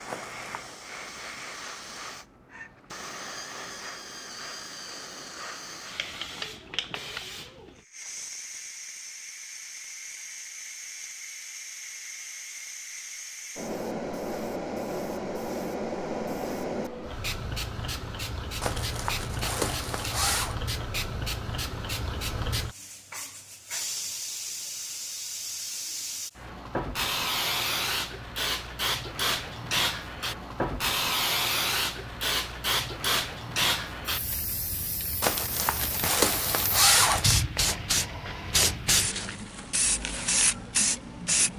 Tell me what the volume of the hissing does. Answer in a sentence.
The loudness of the hissing goes up.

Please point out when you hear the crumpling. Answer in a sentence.
You can hear the crumpling from 0.1 to 0.8 s, from 18.6 to 20.6 s and from 35.2 to 37.4 s.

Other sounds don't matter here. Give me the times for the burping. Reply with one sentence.
You can't hear the burping here.